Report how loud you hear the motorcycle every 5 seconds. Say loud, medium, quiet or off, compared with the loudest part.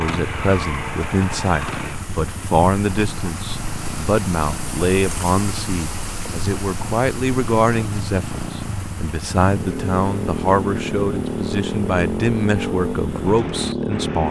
medium, medium, loud.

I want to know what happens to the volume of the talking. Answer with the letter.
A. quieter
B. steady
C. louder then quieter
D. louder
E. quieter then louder
B.